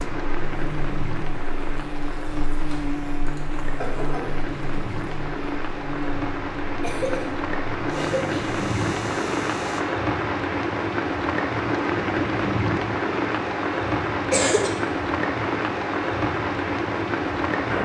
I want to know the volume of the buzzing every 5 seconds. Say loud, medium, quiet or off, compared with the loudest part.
loud, loud, off, off.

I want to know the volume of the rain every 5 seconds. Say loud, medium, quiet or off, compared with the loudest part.
medium, loud, loud, loud.